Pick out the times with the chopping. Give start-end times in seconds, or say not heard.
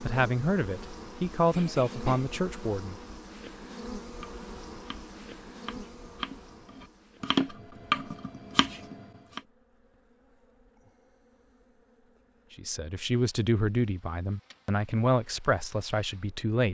4.2-9.4.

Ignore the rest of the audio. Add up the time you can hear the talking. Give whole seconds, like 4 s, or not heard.
7 s.